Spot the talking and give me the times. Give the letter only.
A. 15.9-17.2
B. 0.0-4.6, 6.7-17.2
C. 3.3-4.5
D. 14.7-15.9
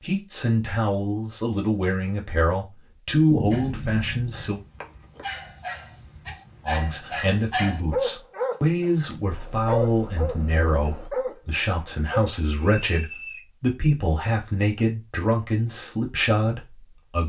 B.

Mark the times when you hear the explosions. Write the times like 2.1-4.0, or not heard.
3.3-4.5.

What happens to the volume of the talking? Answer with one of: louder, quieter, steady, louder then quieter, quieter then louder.
steady.